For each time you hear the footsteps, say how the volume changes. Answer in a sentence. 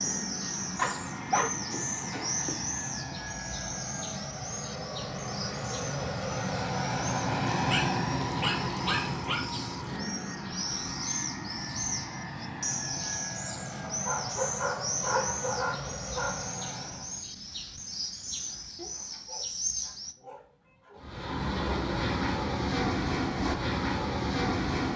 The footsteps can't be heard in this clip.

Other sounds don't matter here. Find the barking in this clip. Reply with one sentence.
The barking can be heard from 0.8 to 2.5 s, from 7.7 to 9.4 s, from 13.7 to 16.4 s and from 18.8 to 21.0 s.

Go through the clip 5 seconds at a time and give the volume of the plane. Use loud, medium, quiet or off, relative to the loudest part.
medium, loud, medium, medium, loud.